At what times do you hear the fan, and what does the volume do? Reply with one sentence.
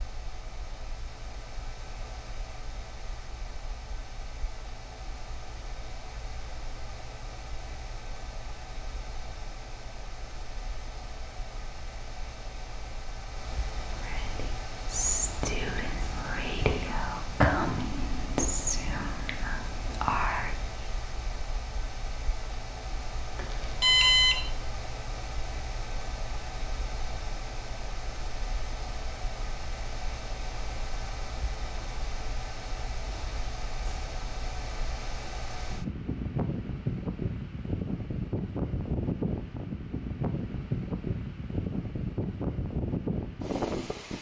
You can hear the fan from 0.0 to 44.1 s, getting louder.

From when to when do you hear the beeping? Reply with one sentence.
The beeping can be heard from 23.4 to 24.4 s.